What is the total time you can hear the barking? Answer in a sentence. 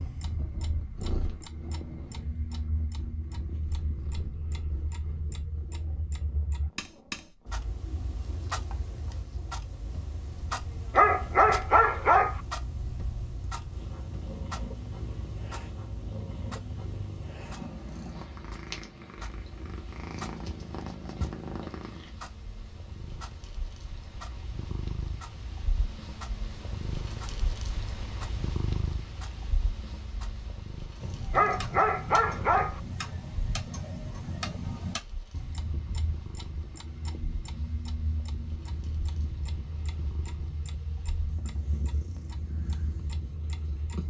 You can hear the barking for 3 seconds altogether.